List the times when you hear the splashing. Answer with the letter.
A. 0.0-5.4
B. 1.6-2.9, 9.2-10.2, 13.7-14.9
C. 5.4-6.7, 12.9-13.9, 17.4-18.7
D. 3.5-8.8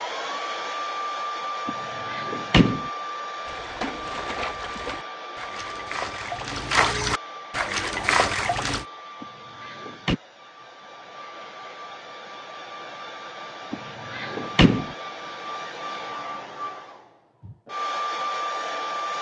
D.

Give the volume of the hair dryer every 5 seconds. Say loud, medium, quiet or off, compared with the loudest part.
loud, medium, medium, loud.